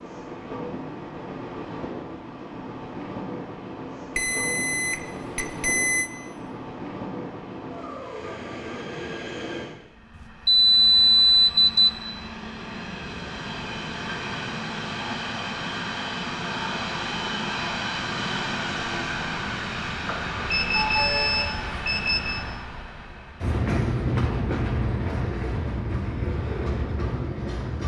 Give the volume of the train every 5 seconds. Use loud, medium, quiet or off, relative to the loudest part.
medium, medium, medium, loud, loud, loud.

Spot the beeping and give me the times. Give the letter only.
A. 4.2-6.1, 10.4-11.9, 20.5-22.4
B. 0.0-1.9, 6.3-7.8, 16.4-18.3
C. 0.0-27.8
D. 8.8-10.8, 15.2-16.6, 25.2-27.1
A.